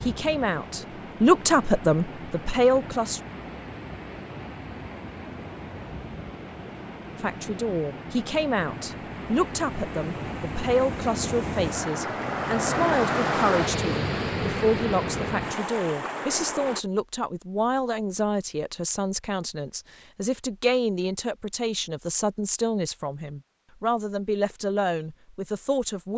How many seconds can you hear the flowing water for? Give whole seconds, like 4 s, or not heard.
17 s.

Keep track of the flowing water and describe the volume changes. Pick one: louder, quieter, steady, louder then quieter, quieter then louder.
louder.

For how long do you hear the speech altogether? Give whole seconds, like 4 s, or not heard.
22 s.